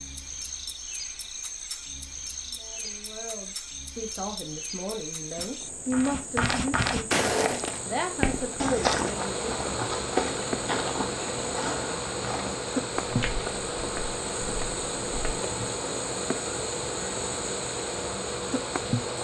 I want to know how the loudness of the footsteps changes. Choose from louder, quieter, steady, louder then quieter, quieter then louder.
quieter.